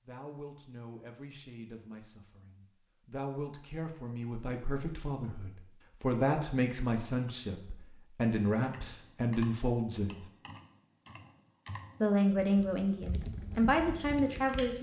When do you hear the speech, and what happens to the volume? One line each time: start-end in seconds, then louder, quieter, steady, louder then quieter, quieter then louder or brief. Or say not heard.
0.1-10.2 louder
12.0-14.7 brief.